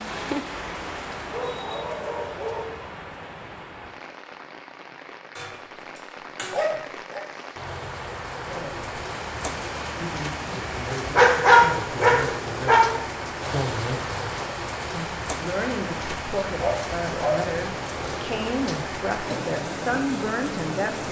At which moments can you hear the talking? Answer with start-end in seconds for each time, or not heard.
8.4-8.9, 9.9-21.0.